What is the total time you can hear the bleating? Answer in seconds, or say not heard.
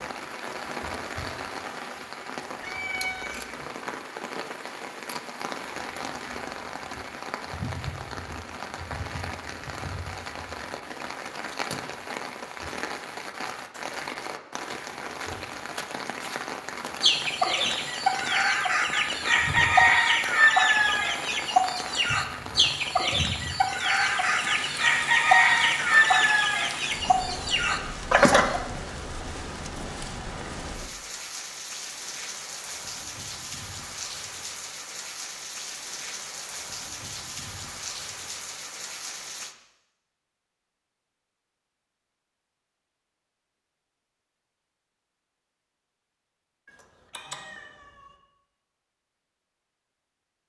not heard.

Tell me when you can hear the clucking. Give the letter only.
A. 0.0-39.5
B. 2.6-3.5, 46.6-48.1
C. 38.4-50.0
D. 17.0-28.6
D.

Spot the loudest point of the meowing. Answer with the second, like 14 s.
3 s.